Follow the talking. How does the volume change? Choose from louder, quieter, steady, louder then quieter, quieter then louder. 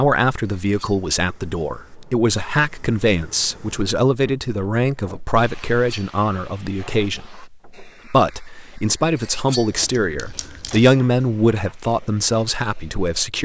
steady.